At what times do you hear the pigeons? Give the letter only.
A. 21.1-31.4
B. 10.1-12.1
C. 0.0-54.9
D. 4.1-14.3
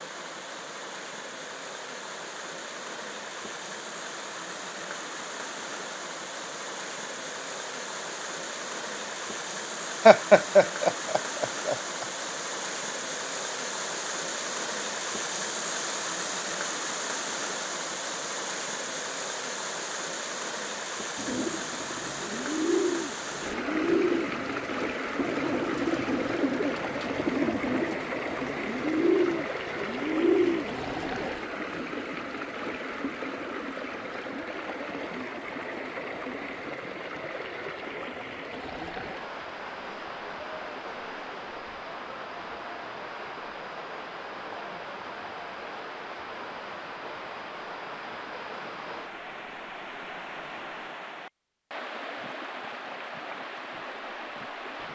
A.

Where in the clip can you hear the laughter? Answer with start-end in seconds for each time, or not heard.
10.1-12.1.